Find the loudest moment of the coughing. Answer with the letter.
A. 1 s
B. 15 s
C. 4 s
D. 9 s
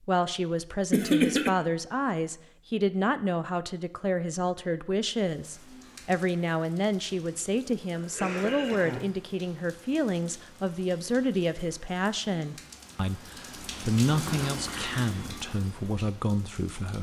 A.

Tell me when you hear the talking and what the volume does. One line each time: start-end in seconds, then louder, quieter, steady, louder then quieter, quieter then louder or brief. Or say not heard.
0.1-16.9 steady.